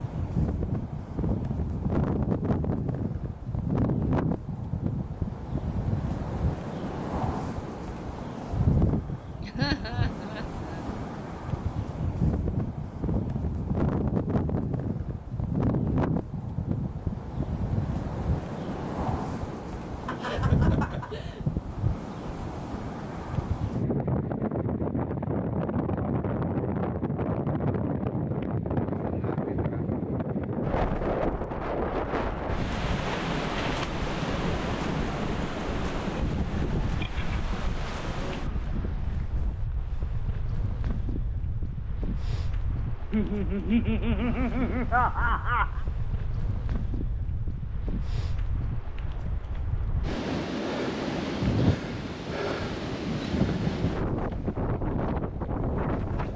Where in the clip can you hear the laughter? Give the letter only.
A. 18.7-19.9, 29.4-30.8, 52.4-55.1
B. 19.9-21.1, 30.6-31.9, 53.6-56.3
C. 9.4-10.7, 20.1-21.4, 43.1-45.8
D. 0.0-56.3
C.